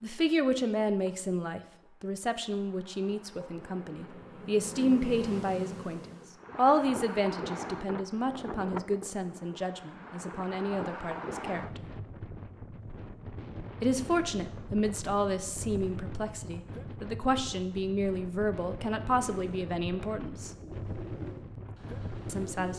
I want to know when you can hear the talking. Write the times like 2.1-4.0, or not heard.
0.0-11.9, 13.8-20.5, 22.2-22.7.